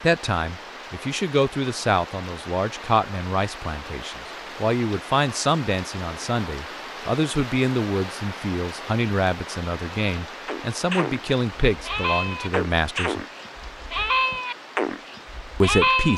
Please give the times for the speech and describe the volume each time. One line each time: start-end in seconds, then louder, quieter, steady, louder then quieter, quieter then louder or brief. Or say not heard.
0.0-13.2 steady
15.6-16.1 brief.